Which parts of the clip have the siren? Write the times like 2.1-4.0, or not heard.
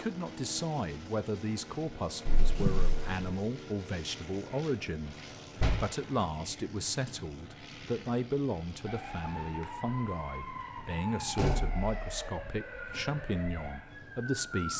8.8-14.7.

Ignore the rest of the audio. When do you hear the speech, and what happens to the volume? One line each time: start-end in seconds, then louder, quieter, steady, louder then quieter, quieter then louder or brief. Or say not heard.
0.0-14.7 steady.